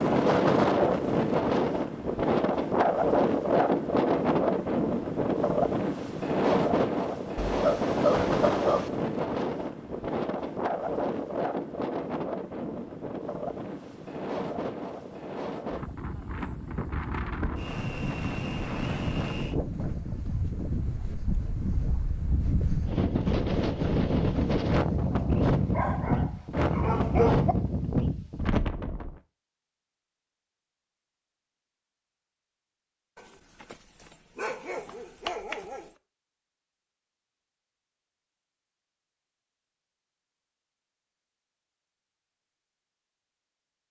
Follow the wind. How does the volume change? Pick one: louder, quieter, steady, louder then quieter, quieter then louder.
quieter then louder.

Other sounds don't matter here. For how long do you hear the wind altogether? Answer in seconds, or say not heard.
29 s.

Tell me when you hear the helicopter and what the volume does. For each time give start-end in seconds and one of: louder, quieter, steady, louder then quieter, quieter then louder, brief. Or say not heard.
not heard.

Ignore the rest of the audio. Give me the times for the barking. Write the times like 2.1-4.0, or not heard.
7.3-8.9, 25.6-27.6, 33.1-35.9.